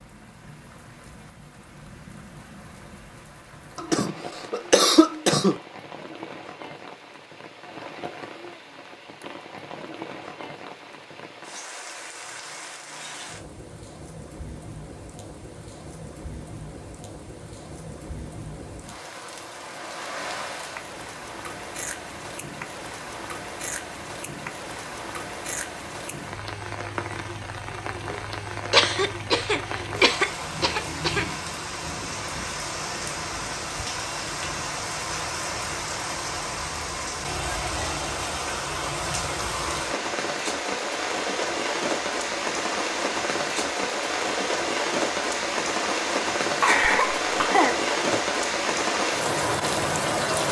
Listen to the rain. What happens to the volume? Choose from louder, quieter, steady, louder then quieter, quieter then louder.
louder.